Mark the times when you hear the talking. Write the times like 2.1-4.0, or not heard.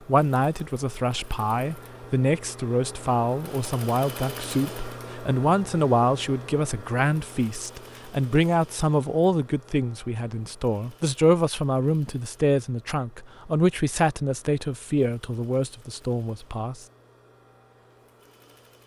0.1-16.9.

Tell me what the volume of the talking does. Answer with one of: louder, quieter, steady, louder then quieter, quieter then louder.
steady.